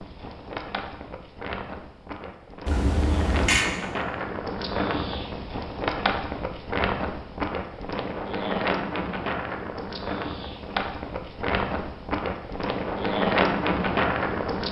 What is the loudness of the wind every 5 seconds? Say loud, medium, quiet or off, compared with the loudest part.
medium, loud, loud.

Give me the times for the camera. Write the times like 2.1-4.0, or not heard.
2.6-3.6.